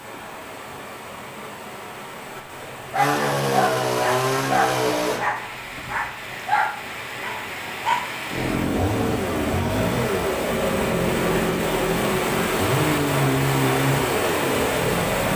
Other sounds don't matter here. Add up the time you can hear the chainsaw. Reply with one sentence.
You can hear the chainsaw for 9 seconds altogether.